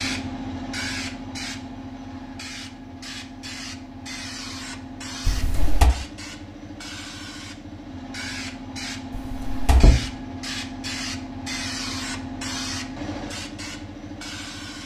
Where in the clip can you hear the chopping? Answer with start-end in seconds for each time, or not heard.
not heard.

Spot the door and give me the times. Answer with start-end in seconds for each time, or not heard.
5.2-5.9, 9.1-10.0.